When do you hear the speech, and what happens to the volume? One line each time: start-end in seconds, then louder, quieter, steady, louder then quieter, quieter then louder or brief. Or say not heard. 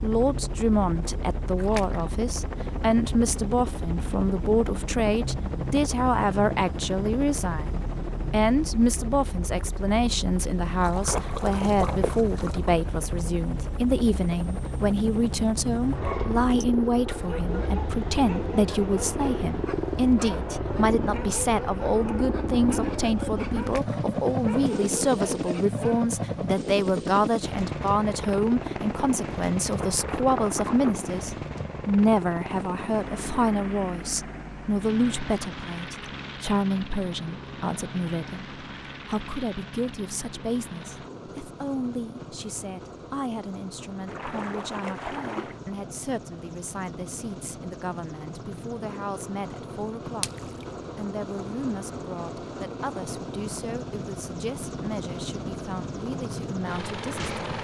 0.0-57.3 quieter.